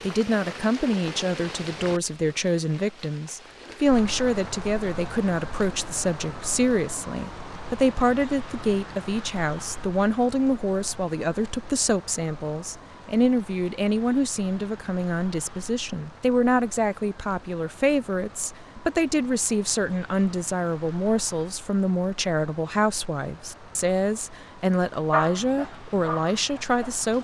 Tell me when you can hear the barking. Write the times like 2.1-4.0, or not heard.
25.1-27.1.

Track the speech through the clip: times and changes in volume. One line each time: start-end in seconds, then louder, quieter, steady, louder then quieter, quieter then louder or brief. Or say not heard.
0.0-27.1 steady.